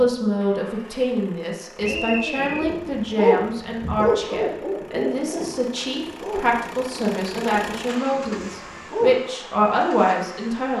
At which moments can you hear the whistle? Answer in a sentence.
The whistle can be heard from 1.8 to 2.6 s.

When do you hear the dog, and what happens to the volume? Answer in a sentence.
The dog can be heard from 1.9 to 9.2 s, getting quieter.